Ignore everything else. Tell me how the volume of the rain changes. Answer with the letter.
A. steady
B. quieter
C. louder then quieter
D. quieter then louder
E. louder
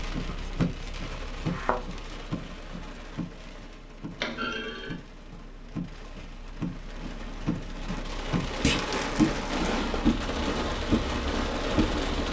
D.